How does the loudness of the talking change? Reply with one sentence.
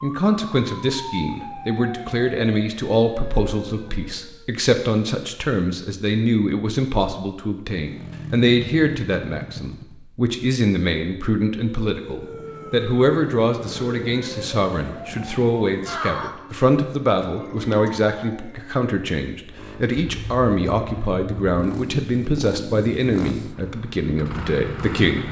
The loudness of the talking stays about the same.